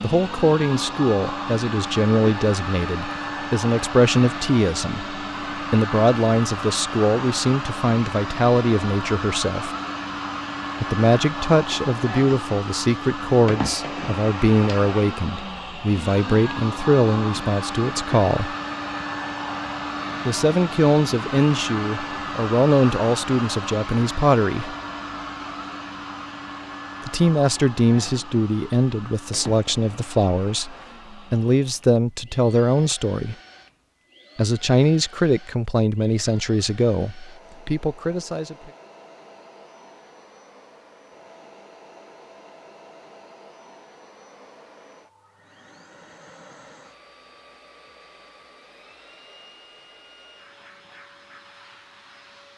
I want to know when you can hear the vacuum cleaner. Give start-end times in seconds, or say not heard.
0.0-52.5.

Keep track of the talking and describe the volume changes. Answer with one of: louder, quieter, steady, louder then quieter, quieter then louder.
steady.